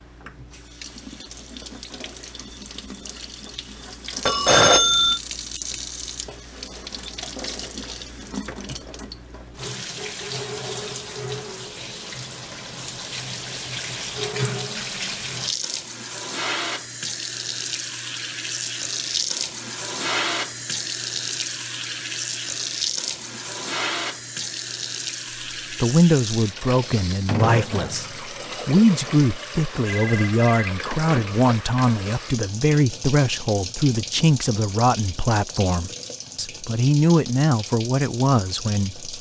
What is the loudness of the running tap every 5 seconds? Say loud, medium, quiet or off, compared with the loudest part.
medium, medium, loud, loud, loud, loud, medium, medium.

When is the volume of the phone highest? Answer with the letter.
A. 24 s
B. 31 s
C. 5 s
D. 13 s
C.